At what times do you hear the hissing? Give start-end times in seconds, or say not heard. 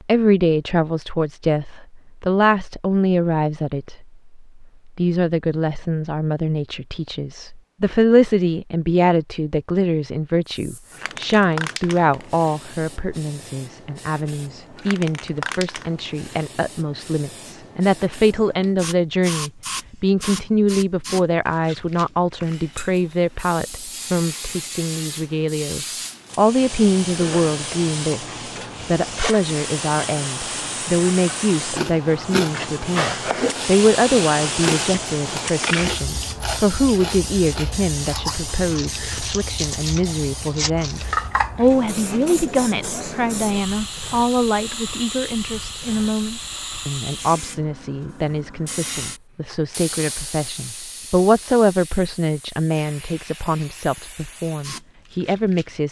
10.4-55.8.